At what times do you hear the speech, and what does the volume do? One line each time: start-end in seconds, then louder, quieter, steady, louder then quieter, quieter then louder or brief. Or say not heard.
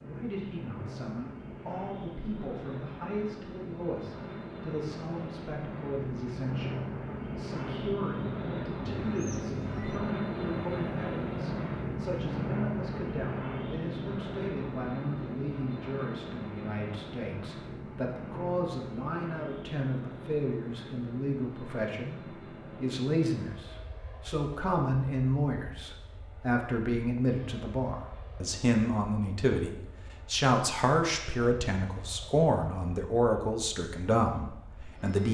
0.0-35.2 louder.